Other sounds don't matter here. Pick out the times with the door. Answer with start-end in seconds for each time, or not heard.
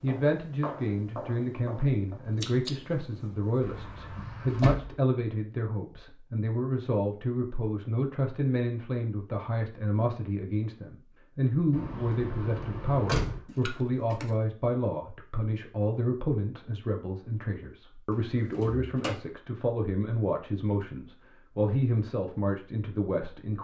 3.6-5.0, 11.7-13.4, 18.1-19.1.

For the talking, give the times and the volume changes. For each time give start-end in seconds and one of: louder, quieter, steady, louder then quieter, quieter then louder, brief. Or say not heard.
0.0-23.5 steady.